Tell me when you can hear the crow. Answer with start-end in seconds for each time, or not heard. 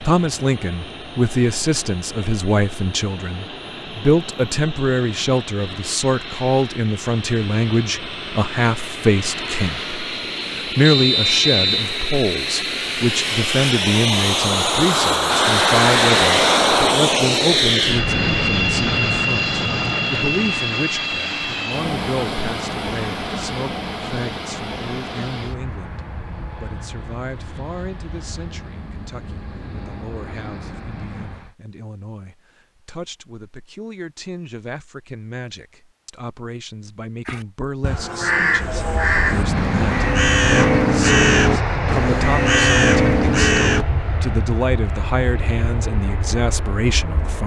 37.2-43.9.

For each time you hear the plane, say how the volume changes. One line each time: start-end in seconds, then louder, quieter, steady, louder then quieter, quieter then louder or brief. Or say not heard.
0.0-31.6 louder then quieter
38.7-47.4 quieter.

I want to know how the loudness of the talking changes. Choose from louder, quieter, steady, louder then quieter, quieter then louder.
quieter then louder.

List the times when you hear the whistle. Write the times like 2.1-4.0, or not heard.
10.8-11.8.